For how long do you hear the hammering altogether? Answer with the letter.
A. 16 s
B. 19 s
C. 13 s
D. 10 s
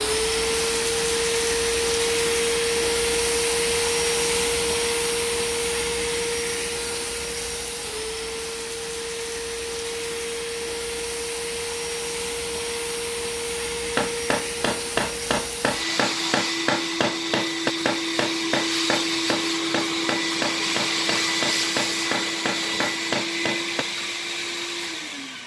D.